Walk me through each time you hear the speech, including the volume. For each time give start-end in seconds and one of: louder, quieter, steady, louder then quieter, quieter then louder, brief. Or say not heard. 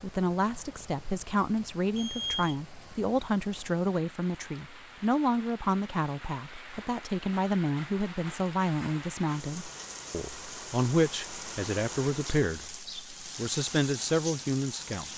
0.0-15.1 steady.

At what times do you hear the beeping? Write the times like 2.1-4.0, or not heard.
1.9-2.5.